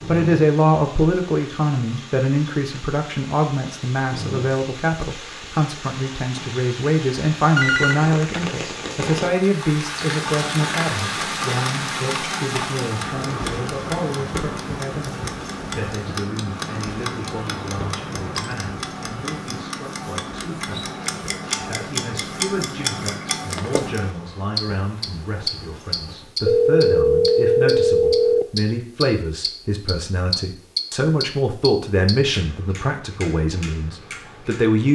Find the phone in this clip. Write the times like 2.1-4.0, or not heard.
7.5-8.6, 17.5-18.6, 26.4-28.4.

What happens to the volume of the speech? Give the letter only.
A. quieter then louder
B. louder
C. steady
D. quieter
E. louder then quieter
A.